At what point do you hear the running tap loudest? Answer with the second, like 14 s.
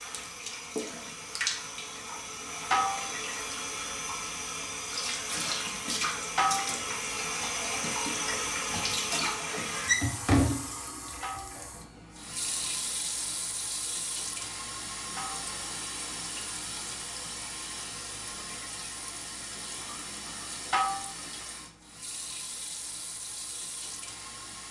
10 s.